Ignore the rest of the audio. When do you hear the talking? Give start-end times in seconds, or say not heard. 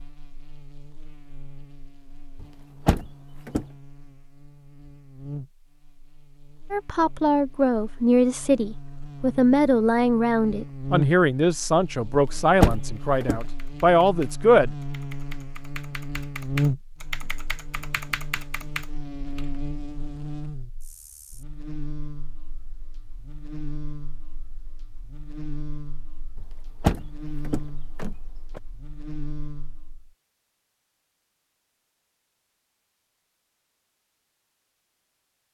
6.7-14.7.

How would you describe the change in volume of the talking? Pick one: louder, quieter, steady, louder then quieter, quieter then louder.
steady.